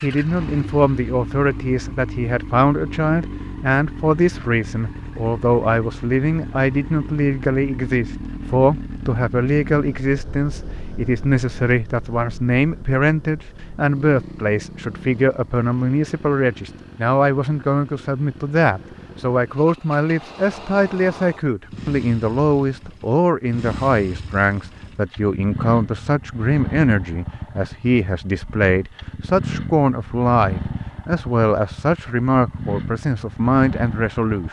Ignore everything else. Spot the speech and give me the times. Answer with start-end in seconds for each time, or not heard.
0.0-34.4.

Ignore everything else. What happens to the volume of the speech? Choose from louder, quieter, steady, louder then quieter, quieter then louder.
steady.